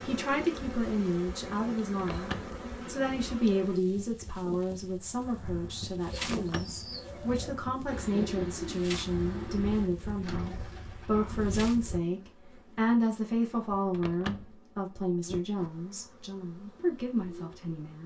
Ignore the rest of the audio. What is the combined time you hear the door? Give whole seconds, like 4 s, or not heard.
2 s.